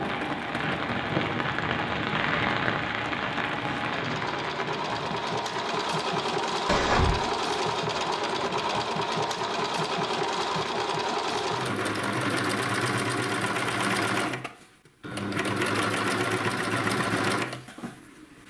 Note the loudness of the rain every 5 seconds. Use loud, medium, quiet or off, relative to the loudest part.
loud, medium, medium, off.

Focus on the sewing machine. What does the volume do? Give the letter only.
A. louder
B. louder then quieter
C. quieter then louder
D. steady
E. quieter
A.